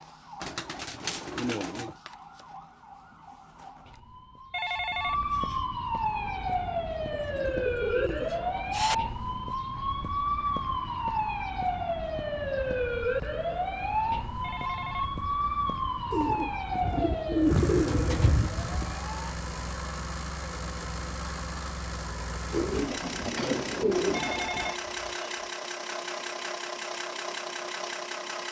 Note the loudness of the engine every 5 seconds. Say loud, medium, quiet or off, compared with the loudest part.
off, quiet, quiet, medium, loud, loud.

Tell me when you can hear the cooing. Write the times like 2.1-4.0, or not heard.
0.4-1.9, 7.1-8.9, 16.1-19.0, 22.5-24.8.